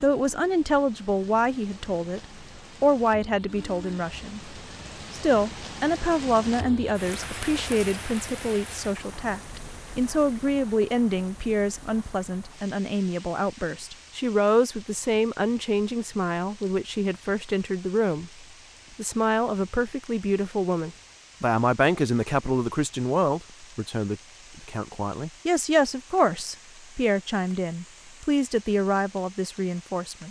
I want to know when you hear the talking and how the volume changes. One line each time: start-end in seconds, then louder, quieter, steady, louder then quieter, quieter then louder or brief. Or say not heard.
0.0-30.2 steady.